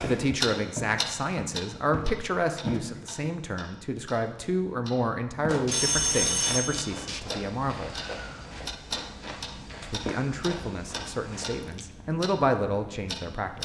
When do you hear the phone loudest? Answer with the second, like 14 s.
6 s.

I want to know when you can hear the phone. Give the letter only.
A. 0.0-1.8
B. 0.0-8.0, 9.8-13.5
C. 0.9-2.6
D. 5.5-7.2
D.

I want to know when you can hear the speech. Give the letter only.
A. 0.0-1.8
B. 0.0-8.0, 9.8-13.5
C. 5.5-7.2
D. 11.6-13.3
B.